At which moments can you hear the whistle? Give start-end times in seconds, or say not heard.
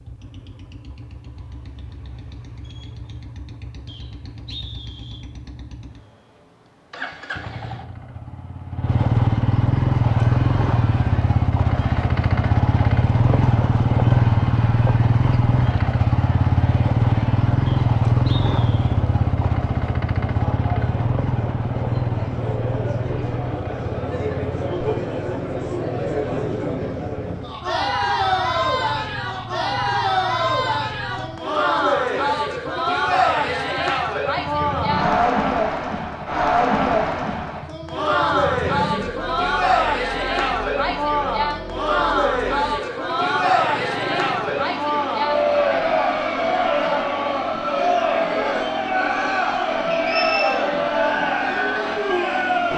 3.9-5.2, 17.6-18.9, 49.9-50.5.